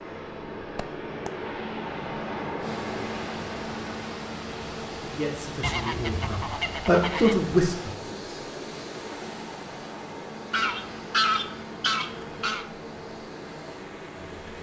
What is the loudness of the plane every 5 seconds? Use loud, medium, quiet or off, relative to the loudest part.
loud, medium, medium.